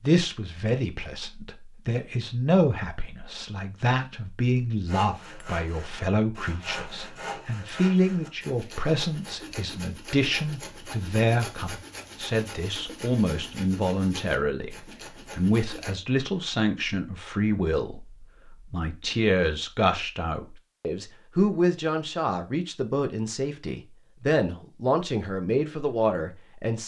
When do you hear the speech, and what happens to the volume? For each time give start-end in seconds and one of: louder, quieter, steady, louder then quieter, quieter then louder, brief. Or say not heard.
0.0-26.8 steady.